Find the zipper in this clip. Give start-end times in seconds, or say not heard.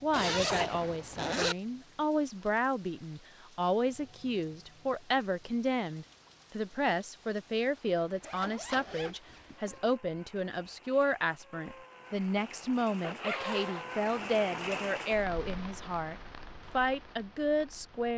0.1-1.6, 8.2-9.9, 12.8-13.8.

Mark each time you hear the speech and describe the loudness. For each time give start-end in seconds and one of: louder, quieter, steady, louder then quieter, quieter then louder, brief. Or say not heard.
0.0-18.1 steady.